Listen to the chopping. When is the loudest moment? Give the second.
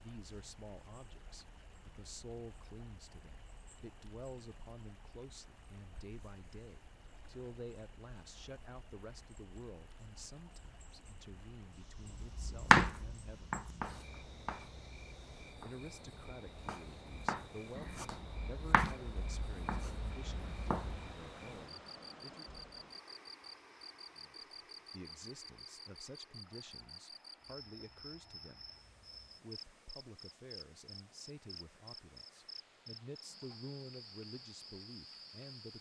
13 s.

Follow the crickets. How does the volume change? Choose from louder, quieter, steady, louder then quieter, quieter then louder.
louder.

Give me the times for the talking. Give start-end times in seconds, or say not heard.
0.0-13.6, 15.6-22.6, 24.1-28.6, 29.4-35.7.